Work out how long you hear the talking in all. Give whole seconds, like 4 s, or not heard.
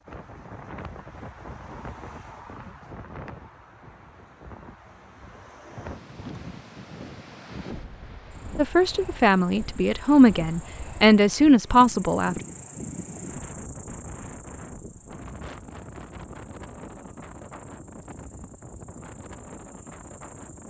4 s.